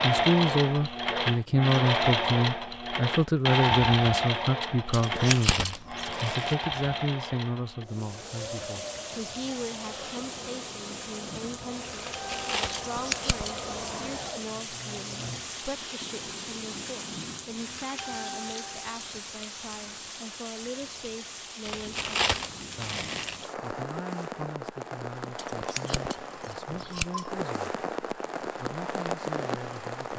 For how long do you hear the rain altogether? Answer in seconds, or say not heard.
22 s.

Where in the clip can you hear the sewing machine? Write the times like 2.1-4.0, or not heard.
0.0-15.9.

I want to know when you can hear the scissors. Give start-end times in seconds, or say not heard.
4.9-6.3, 12.9-14.1, 25.4-27.3.